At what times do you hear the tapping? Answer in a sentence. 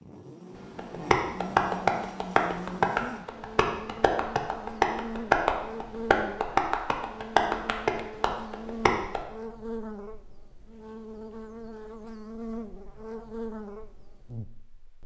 The tapping can be heard from 0.8 to 9.2 s.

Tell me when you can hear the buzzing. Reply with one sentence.
You can hear the buzzing from 0.0 to 15.0 s.